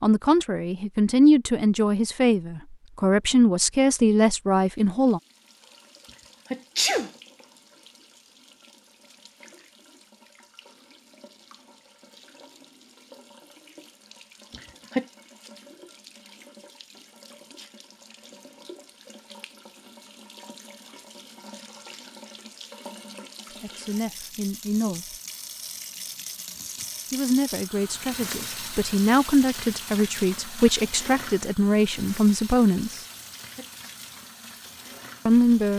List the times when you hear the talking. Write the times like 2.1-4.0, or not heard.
0.0-5.2, 23.6-25.1, 27.1-33.0, 35.2-35.7.